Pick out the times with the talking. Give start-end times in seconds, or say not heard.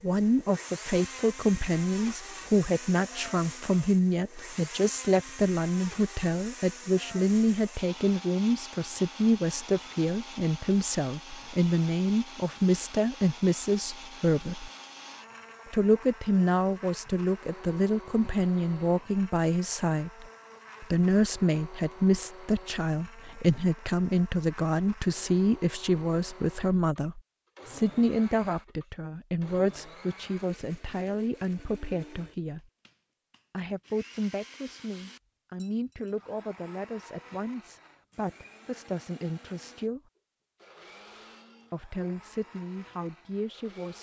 0.0-14.7, 15.7-32.6, 33.5-40.0, 41.7-43.9.